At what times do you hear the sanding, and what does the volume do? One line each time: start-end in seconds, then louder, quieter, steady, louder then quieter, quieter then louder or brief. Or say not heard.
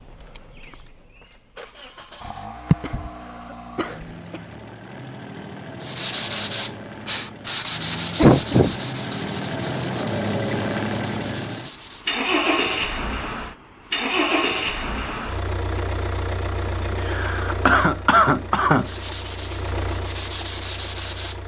5.8-12.2 quieter
18.8-21.4 brief.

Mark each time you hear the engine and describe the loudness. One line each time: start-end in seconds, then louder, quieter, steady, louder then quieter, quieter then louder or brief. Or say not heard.
0.0-21.4 louder then quieter.